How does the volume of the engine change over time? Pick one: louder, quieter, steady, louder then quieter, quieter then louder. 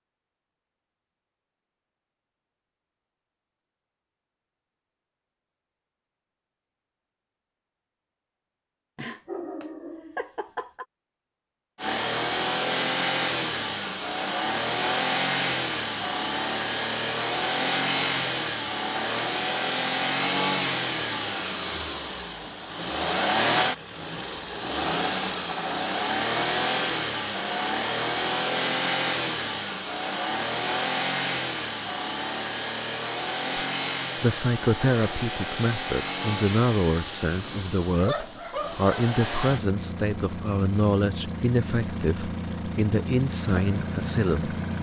quieter.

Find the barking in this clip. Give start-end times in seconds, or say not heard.
8.9-10.8, 37.2-39.0.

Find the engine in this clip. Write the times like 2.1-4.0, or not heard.
11.8-44.7.